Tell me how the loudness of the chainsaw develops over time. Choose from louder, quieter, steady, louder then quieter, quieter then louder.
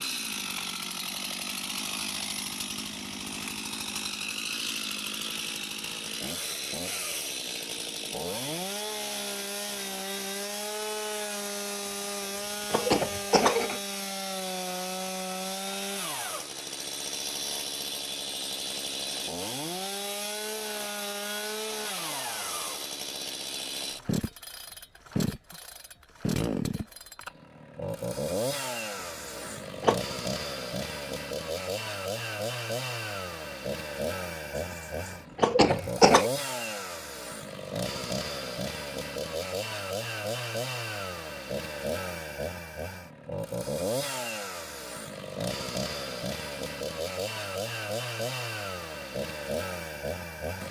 steady.